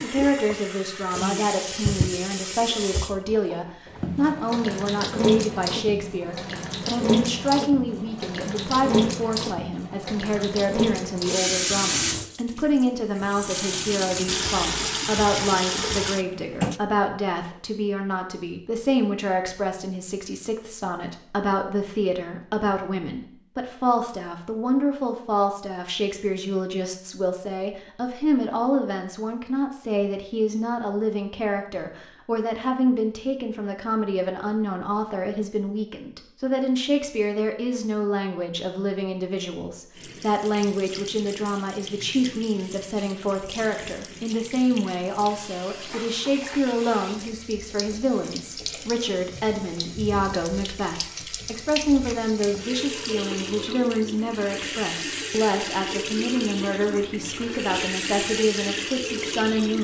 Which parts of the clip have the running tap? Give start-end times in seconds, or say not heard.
0.0-16.8, 40.0-59.8.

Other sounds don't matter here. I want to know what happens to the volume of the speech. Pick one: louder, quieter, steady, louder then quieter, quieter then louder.
steady.